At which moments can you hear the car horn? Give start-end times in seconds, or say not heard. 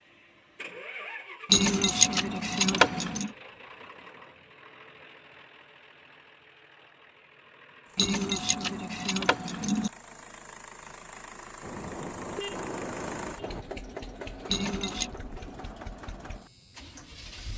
11.6-13.7.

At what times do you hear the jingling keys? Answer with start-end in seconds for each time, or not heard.
1.5-3.3, 8.0-9.9, 14.4-15.2.